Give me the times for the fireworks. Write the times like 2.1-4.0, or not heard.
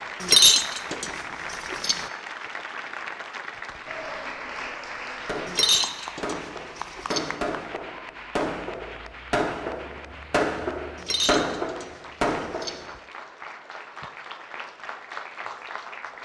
5.2-12.9.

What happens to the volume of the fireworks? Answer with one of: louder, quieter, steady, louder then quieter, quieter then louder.
louder.